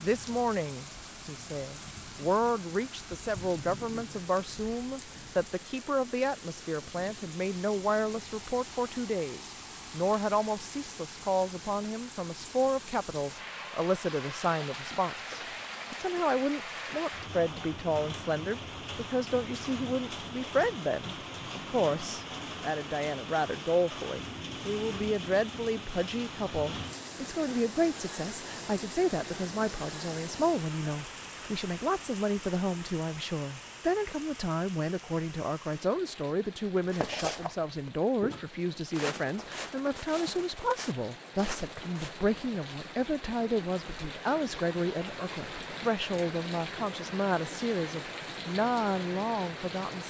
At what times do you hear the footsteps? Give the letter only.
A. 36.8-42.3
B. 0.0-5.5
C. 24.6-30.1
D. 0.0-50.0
A.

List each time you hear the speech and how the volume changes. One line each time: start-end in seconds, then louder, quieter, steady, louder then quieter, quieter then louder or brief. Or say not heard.
0.0-50.0 steady.